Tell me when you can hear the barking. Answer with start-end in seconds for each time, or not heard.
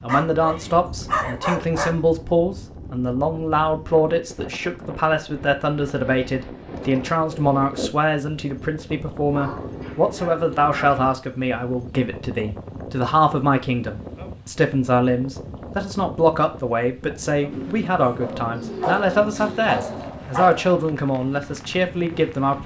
0.1-2.0, 9.2-10.9, 18.2-20.8.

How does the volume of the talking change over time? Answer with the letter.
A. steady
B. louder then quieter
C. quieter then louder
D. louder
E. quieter
A.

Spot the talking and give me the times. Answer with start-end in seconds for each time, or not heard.
0.0-22.6.